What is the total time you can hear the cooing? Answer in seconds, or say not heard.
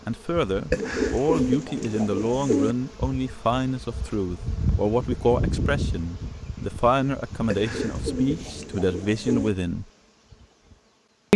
4 s.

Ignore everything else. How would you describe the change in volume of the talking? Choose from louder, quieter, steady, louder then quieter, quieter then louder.
steady.